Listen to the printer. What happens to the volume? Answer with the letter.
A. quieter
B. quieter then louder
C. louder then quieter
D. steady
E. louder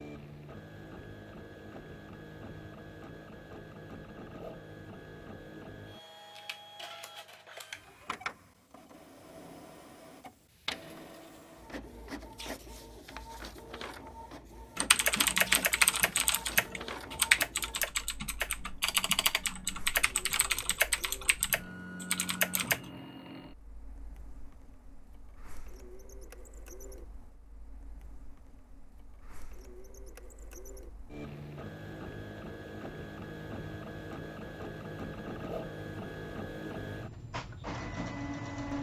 B.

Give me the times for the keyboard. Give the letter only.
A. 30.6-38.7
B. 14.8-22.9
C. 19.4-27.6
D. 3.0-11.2
B.